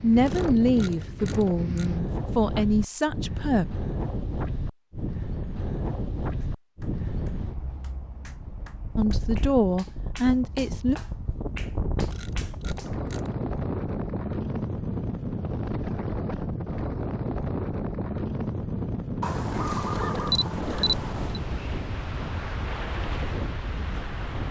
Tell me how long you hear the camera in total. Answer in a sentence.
You can hear the camera for 5 seconds altogether.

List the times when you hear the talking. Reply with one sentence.
You can hear the talking from 0.0 to 3.6 s and from 8.9 to 10.9 s.